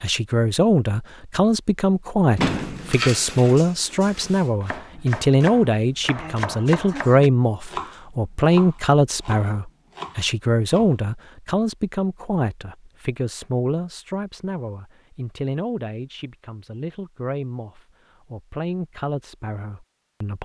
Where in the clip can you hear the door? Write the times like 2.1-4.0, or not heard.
2.4-4.5.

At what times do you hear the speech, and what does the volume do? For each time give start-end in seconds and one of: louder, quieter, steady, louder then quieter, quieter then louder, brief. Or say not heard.
0.0-20.4 quieter.